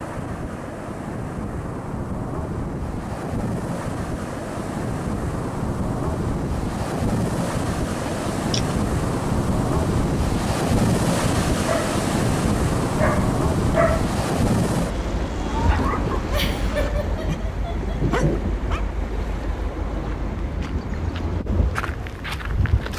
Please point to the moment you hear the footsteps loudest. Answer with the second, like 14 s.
22 s.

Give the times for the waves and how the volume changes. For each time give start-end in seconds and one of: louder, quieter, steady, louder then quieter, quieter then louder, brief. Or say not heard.
0.0-22.9 louder then quieter.